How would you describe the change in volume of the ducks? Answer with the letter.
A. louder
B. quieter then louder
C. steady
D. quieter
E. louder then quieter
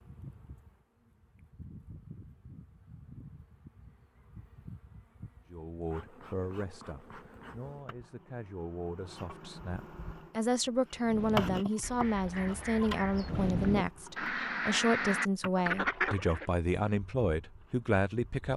A.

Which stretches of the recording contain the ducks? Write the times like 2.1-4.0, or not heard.
10.9-16.5.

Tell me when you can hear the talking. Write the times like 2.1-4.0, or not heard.
5.5-18.5.